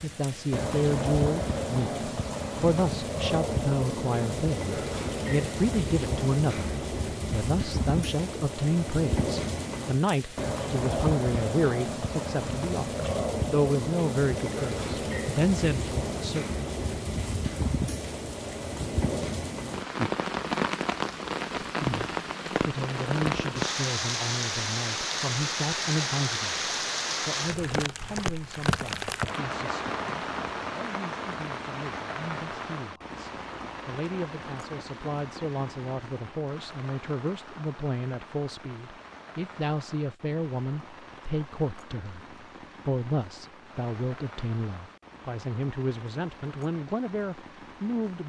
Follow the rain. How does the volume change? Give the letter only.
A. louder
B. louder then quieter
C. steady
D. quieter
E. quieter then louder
D.